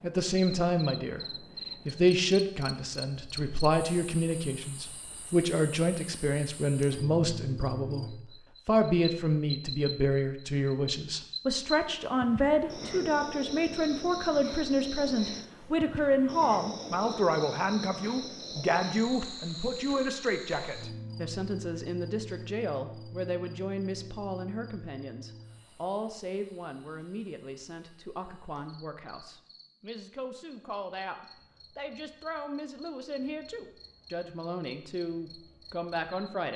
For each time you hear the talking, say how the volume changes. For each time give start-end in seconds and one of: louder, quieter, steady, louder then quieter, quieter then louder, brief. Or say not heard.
0.0-1.2 brief
1.9-36.5 quieter.